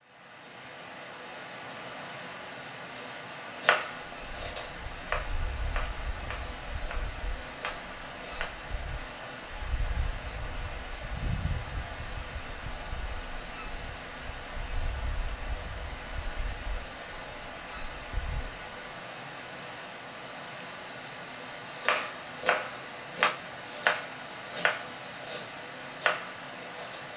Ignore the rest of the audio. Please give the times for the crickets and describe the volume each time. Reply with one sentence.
The crickets can be heard from 4.0 to 27.1 s, getting louder.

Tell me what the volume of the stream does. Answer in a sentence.
The loudness of the stream stays about the same.